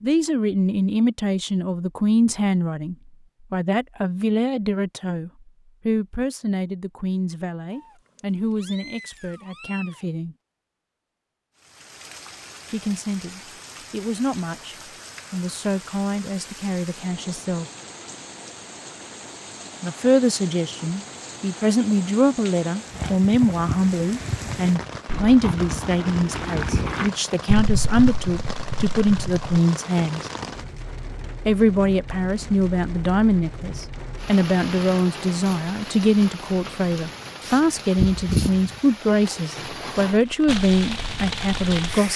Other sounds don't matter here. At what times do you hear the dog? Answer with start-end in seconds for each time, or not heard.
not heard.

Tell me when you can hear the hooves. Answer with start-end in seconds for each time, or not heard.
22.9-29.6.